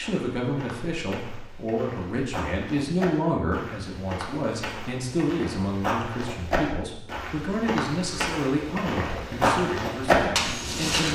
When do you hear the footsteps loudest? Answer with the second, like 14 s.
10 s.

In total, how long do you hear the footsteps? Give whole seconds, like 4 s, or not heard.
11 s.